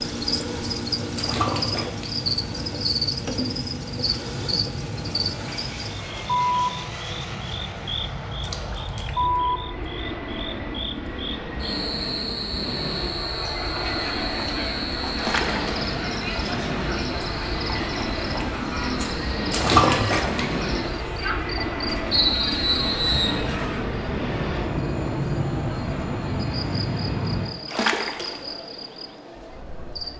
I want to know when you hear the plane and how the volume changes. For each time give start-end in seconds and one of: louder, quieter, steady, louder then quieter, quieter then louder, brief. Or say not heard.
0.0-27.6 louder.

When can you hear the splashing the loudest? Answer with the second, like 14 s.
20 s.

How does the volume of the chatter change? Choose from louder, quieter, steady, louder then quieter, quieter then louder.
quieter.